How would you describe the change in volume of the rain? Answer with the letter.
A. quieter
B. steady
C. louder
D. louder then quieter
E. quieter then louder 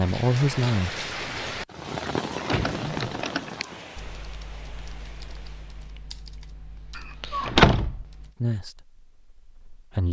A.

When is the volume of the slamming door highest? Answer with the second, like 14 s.
8 s.